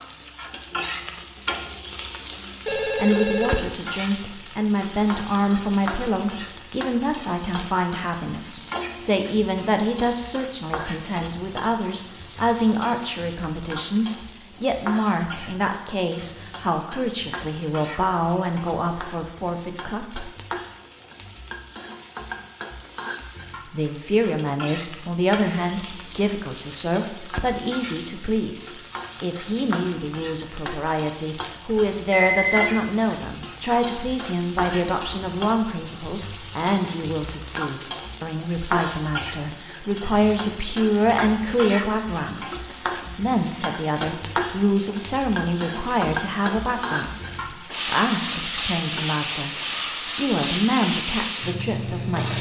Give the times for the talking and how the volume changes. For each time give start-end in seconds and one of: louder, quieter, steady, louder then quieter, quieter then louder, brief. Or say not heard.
3.0-20.2 steady
23.6-49.5 steady
50.1-52.3 brief.